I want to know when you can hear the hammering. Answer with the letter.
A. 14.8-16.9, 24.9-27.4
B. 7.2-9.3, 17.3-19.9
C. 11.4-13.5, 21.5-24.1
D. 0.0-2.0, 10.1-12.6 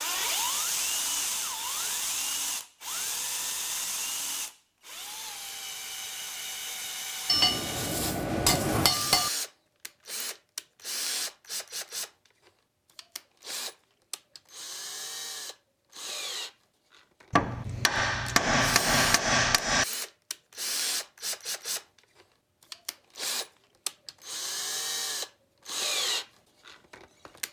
B.